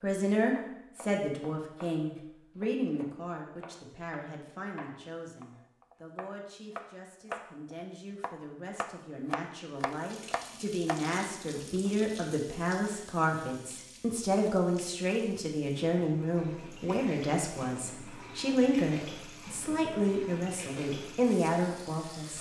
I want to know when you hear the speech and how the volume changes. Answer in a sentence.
The speech can be heard from 0.0 to 22.3 s, getting quieter then louder.